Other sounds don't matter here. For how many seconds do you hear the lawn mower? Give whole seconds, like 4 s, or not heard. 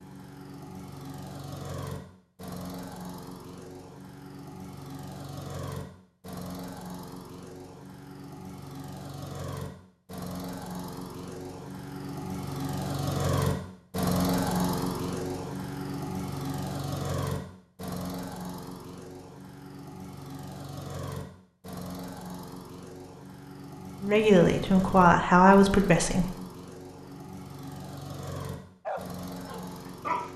30 s.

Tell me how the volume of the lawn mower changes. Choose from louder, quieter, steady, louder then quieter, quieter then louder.
louder then quieter.